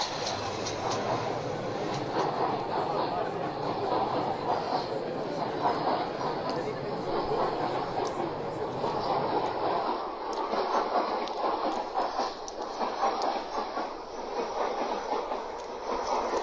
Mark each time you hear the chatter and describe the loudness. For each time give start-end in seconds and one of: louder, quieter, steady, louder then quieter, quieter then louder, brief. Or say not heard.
0.0-9.8 steady.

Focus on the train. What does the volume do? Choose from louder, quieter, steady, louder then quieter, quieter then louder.
steady.